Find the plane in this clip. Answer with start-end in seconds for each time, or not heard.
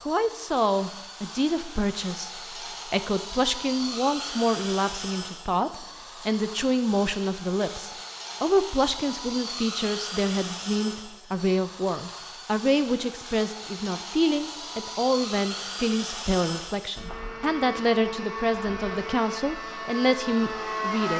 0.0-21.1.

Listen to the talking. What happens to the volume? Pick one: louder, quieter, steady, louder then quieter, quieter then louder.
steady.